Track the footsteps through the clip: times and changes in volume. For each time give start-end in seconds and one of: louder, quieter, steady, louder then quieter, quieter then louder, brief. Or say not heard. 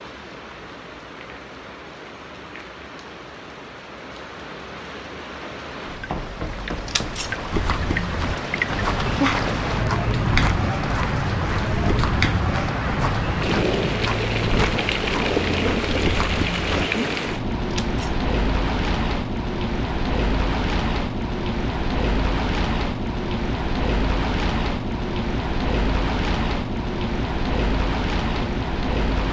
7.5-16.9 steady.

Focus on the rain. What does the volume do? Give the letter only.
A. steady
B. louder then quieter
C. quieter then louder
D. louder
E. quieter
D.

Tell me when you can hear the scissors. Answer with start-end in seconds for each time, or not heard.
6.8-7.3, 17.7-18.2.